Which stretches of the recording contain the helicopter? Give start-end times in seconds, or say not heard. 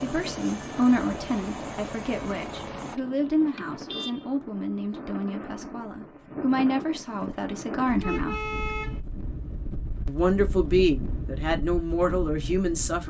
0.0-3.0.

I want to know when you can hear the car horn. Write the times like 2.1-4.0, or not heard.
3.0-4.3, 8.0-9.0.